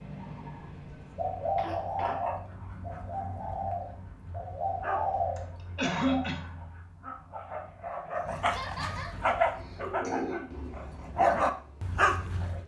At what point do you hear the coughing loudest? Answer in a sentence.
The volume of the coughing peaks at 6 seconds.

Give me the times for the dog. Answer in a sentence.
You can hear the dog from 1.0 to 12.6 s.